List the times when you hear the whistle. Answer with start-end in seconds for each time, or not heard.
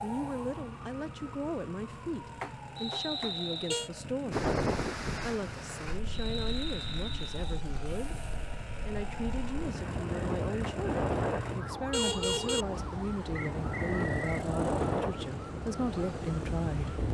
2.8-3.6, 6.1-7.7, 13.3-14.4.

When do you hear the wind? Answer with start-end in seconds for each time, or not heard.
4.3-17.0.